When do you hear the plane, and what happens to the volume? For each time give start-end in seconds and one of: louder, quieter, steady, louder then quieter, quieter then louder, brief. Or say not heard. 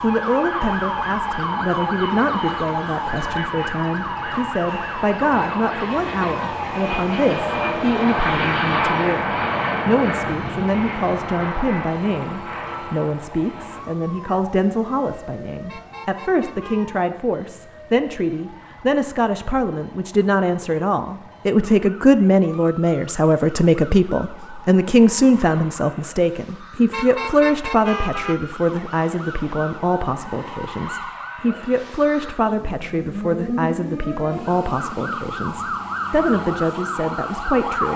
0.0-13.8 louder then quieter.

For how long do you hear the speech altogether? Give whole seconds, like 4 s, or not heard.
38 s.